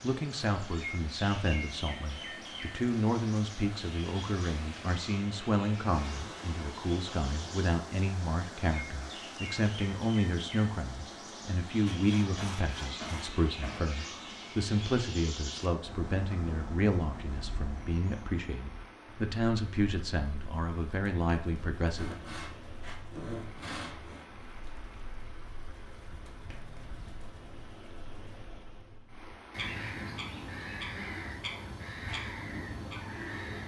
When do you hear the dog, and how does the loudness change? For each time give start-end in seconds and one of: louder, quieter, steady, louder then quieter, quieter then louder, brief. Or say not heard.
not heard.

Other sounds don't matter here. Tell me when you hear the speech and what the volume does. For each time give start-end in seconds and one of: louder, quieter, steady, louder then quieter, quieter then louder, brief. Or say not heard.
0.0-22.1 steady.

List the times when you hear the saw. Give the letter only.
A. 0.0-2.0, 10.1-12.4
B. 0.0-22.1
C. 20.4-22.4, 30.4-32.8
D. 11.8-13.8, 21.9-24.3
D.